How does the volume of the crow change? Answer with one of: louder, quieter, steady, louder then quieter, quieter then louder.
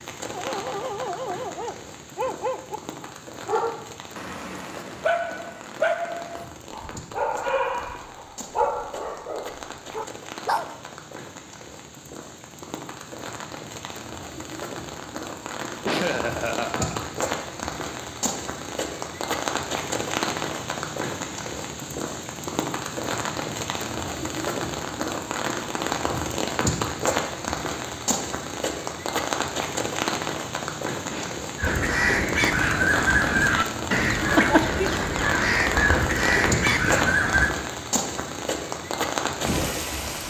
steady.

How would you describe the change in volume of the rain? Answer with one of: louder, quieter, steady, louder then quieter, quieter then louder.
louder.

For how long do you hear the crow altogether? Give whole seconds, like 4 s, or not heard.
6 s.